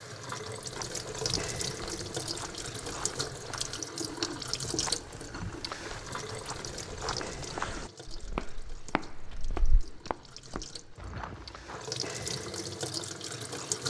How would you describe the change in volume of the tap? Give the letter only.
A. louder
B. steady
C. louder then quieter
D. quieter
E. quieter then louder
E.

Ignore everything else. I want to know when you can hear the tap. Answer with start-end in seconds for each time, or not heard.
0.0-13.8.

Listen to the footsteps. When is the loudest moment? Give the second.
8 s.